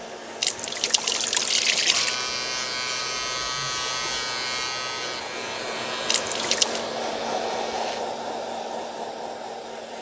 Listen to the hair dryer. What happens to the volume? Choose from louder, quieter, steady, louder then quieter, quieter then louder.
louder.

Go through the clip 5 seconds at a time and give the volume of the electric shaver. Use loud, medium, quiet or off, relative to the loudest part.
loud, medium.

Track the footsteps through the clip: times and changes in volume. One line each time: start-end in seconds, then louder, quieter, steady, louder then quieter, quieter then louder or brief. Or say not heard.
not heard.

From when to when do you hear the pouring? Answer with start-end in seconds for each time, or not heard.
0.4-2.1, 6.0-6.8.